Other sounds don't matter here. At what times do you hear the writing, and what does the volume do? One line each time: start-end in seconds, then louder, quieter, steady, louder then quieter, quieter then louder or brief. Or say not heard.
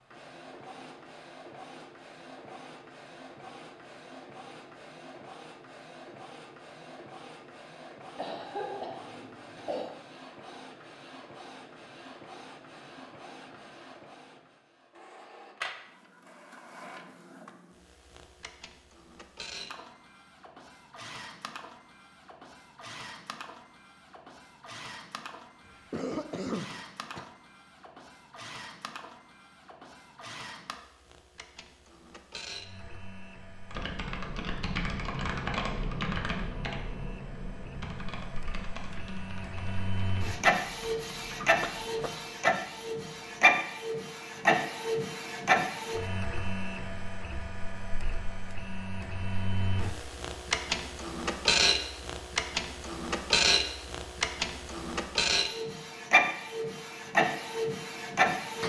not heard.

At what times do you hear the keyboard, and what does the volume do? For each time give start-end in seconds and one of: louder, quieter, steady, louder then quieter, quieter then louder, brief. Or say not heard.
33.6-42.0 quieter.